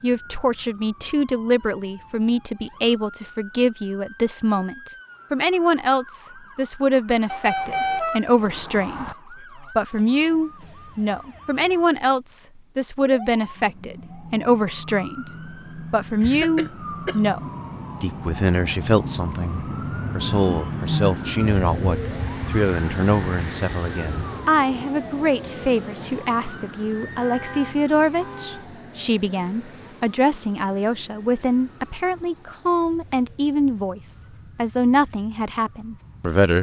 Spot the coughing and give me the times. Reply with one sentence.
You can hear the coughing from 16.2 to 17.2 s.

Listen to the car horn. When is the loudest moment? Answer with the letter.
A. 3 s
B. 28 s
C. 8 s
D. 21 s
C.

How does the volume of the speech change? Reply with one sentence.
The loudness of the speech stays about the same.